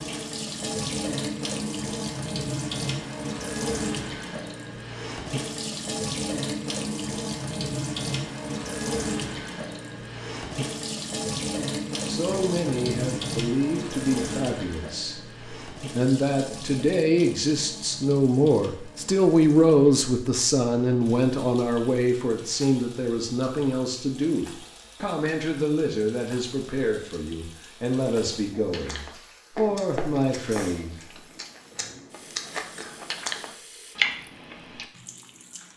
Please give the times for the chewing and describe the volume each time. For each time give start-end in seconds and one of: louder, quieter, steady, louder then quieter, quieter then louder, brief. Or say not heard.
28.7-34.9 quieter then louder.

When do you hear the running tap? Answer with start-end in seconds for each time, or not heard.
0.0-35.7.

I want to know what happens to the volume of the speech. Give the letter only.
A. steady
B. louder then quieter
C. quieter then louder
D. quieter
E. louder
B.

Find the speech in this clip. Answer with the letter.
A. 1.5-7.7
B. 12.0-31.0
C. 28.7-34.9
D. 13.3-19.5
B.